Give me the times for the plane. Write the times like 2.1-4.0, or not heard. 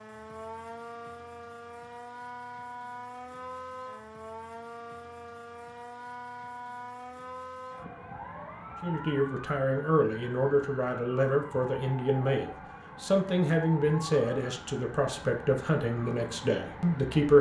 not heard.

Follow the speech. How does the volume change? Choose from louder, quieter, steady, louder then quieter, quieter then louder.
steady.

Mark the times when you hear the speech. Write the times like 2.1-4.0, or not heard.
8.8-17.3.